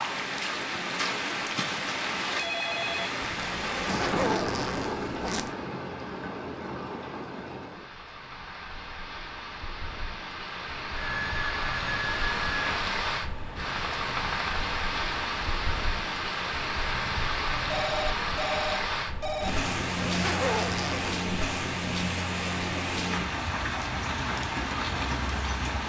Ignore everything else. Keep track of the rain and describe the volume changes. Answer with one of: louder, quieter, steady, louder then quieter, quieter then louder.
quieter then louder.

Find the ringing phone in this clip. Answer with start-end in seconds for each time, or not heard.
2.4-3.1, 10.9-12.8, 17.5-19.5.